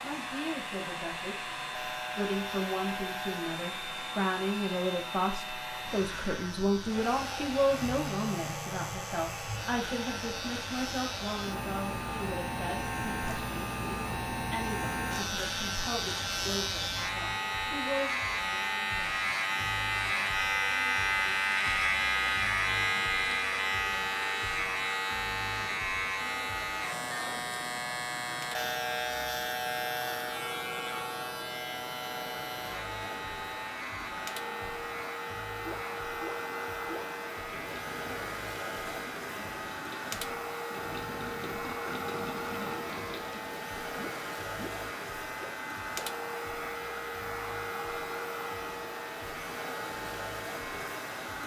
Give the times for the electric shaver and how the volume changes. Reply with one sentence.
The electric shaver can be heard from 0.0 to 51.4 s, getting louder then quieter.